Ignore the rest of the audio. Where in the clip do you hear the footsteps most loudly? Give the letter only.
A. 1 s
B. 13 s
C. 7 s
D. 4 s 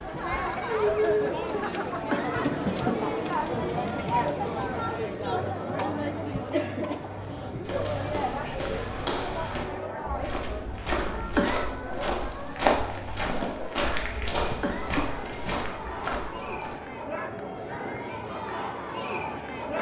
B.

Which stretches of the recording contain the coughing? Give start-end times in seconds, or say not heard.
1.6-3.1, 10.9-11.7, 14.2-15.1.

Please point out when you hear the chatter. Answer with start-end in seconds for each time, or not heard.
0.0-19.7.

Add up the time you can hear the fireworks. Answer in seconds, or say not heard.
not heard.